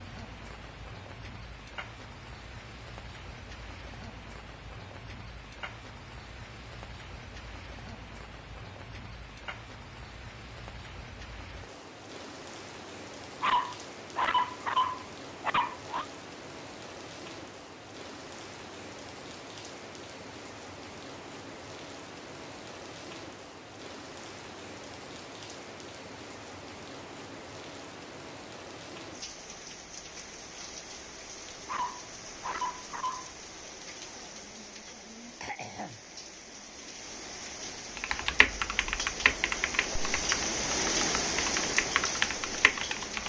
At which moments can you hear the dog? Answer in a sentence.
The dog can be heard from 13.4 to 16.1 s and from 31.6 to 33.3 s.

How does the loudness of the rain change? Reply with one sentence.
The volume of the rain goes up.